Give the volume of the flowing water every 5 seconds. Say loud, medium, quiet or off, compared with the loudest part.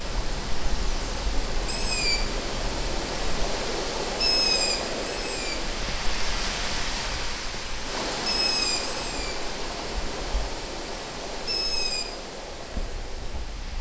loud, loud, medium.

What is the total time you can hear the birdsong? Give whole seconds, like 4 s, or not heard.
14 s.